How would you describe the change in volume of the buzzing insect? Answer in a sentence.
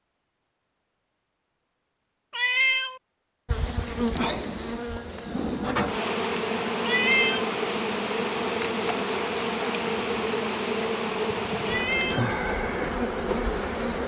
The volume of the buzzing insect stays about the same.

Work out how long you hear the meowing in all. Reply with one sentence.
The meowing can be heard for 2 seconds in total.